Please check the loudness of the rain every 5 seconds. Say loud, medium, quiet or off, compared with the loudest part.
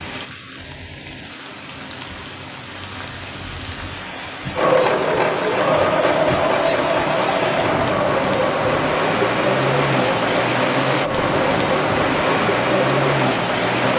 quiet, loud, loud.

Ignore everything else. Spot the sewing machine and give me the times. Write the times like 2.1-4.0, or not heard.
4.5-13.9.